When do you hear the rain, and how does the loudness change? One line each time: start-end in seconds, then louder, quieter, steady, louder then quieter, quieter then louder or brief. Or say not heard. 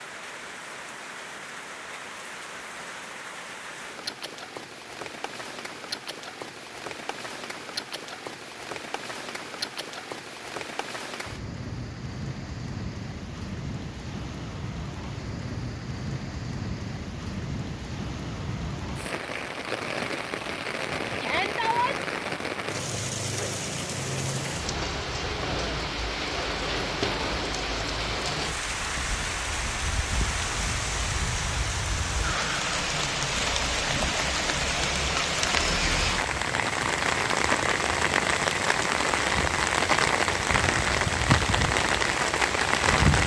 0.0-43.2 louder.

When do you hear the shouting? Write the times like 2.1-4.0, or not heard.
21.2-21.9.